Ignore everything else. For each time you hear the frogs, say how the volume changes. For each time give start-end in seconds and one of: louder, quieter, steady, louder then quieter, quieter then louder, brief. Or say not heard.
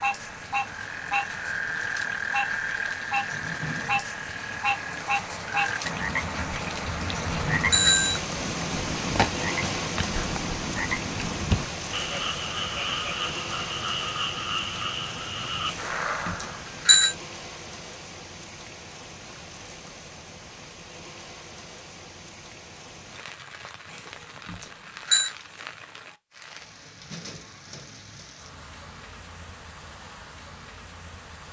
0.0-16.6 steady.